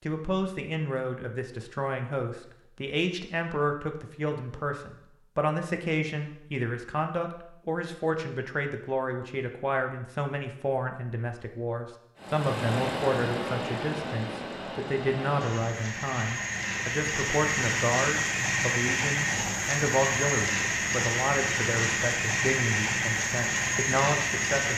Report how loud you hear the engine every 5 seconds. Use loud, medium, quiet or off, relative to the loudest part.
off, off, medium, loud, loud.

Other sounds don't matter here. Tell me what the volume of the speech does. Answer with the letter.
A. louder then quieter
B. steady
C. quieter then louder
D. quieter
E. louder
B.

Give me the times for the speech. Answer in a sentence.
You can hear the speech from 0.1 to 24.7 s.